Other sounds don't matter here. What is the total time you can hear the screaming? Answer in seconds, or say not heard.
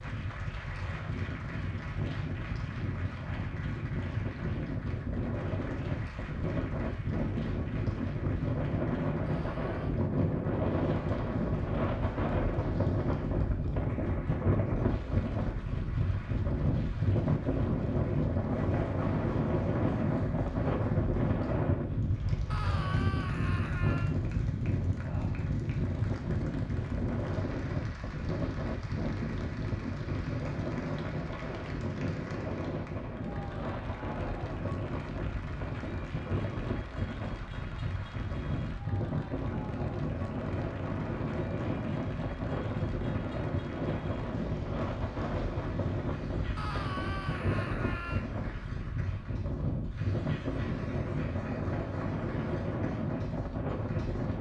4 s.